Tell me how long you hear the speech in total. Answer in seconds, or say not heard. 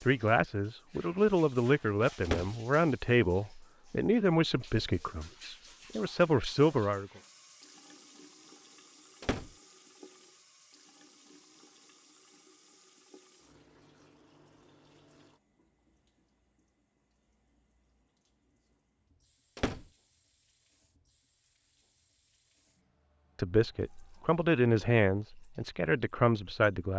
11 s.